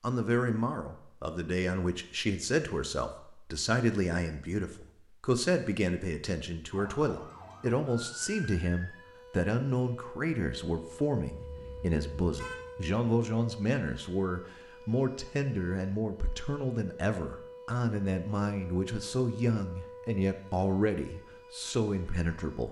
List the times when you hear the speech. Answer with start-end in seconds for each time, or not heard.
0.0-22.6.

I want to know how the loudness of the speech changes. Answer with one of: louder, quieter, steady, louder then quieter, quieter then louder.
steady.